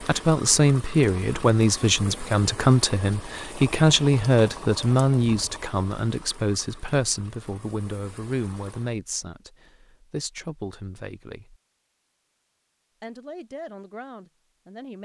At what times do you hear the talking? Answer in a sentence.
The talking can be heard from 0.0 to 11.6 s and from 13.0 to 15.0 s.